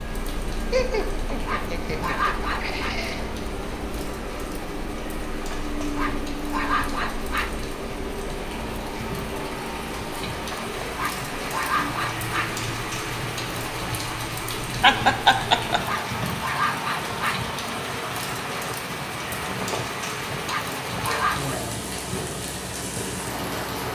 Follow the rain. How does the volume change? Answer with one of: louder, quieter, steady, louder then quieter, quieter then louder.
louder.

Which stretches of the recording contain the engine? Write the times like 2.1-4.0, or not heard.
0.0-23.9.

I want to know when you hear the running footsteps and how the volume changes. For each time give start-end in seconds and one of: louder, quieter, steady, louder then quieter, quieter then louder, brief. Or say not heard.
not heard.